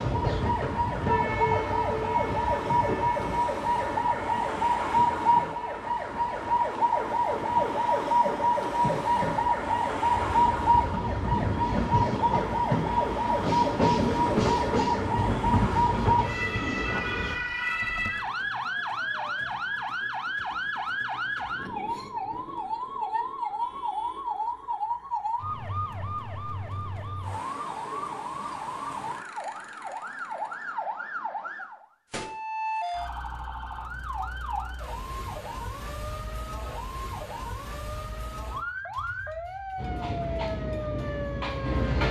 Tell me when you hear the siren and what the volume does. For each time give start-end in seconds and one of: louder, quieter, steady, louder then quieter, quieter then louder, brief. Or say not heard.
0.0-42.0 quieter.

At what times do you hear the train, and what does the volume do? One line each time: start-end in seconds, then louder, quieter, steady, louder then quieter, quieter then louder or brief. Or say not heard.
0.0-17.4 quieter then louder
39.8-42.0 brief.